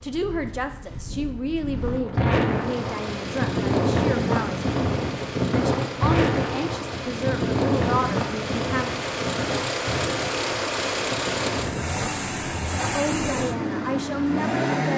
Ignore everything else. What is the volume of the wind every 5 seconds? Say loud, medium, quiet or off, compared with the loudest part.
loud, loud, medium.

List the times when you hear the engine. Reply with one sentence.
You can hear the engine from 2.4 to 14.9 s.